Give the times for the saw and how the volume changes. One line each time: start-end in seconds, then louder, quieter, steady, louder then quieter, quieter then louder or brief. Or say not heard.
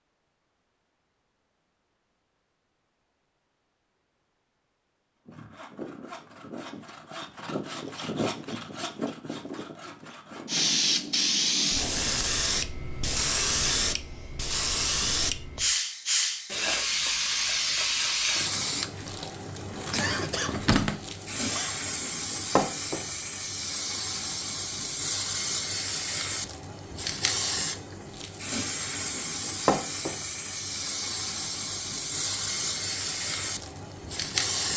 5.2-10.7 louder then quieter.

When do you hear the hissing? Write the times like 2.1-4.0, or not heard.
10.4-34.7.